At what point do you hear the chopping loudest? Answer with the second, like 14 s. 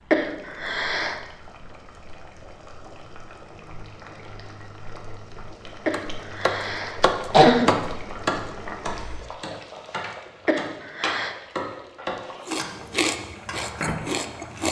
8 s.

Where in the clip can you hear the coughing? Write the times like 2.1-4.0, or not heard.
0.1-1.2, 5.8-7.8, 10.4-11.3.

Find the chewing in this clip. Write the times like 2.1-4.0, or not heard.
12.4-14.6.